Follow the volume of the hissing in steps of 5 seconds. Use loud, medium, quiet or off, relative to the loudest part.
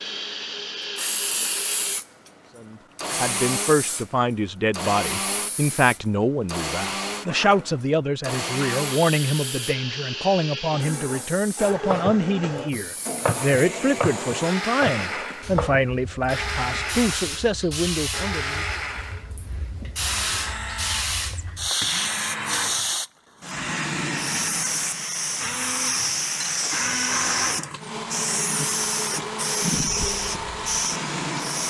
medium, quiet, quiet, medium, loud, loud, loud.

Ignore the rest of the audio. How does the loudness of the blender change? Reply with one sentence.
The volume of the blender stays about the same.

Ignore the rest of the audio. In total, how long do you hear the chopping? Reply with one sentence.
The chopping can be heard for 4 seconds in total.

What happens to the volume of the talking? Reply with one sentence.
The loudness of the talking stays about the same.